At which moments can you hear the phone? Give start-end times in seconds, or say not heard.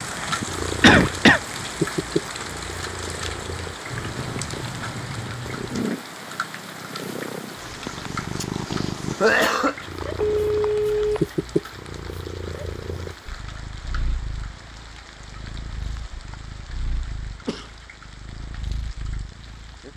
10.2-11.2.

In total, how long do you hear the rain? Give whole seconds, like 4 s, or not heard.
20 s.